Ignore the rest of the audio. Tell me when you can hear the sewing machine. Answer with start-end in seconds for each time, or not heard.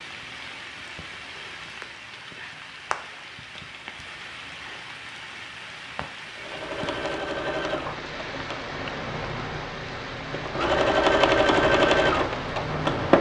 6.3-13.1.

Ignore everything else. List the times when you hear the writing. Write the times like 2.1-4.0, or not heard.
not heard.